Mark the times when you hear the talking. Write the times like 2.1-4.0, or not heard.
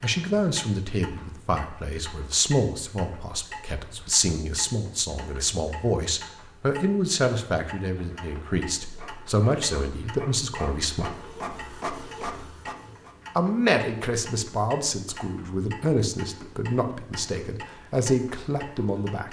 0.0-11.1, 13.3-19.2.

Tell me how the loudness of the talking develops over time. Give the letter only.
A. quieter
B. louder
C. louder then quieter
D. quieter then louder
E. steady
E.